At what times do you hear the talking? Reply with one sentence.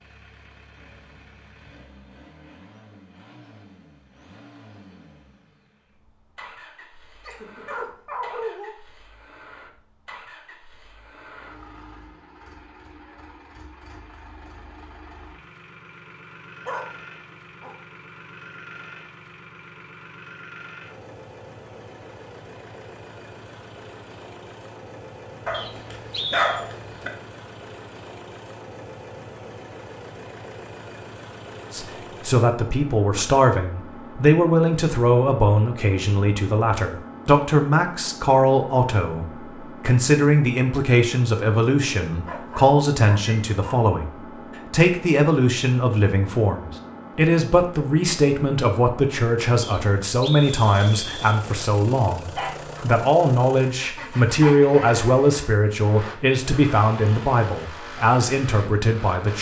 You can hear the talking from 31.7 to 59.3 s.